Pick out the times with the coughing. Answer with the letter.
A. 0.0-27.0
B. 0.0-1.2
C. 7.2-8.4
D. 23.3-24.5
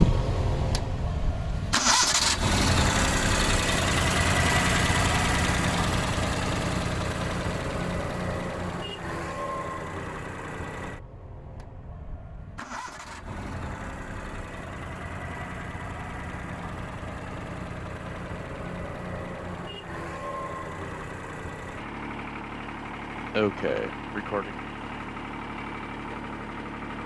D.